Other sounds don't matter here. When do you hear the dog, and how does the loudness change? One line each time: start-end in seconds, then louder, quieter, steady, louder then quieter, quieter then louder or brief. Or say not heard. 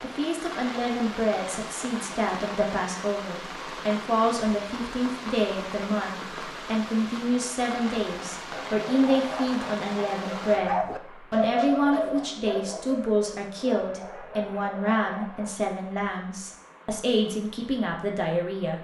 8.5-15.6 louder then quieter.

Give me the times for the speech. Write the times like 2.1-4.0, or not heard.
0.0-18.7.